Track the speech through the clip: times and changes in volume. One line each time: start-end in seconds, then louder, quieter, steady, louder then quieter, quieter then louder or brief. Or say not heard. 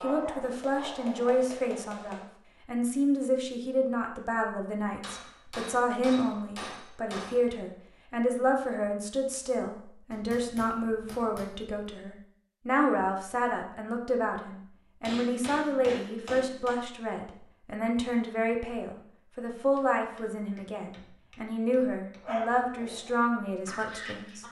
0.0-24.4 steady.